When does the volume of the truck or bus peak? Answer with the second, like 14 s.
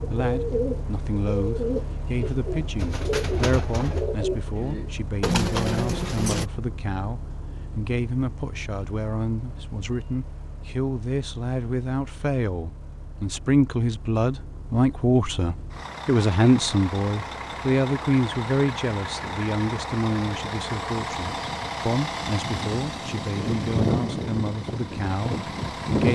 26 s.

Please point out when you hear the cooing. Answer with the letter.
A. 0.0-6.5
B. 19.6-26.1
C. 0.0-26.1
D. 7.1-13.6
A.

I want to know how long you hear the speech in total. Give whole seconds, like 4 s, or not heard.
26 s.